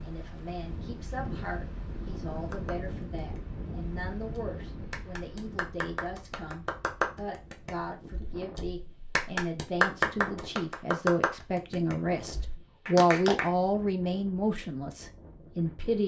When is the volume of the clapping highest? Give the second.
10 s.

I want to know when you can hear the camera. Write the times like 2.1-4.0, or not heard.
not heard.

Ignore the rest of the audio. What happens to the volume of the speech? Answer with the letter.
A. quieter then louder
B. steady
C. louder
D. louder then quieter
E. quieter
C.